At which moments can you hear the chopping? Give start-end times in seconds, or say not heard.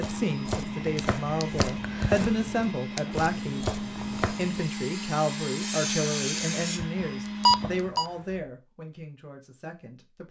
0.0-4.7.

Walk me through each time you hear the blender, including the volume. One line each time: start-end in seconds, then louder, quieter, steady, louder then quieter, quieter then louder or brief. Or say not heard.
0.0-7.9 steady.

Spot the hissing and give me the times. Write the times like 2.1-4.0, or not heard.
3.1-6.8.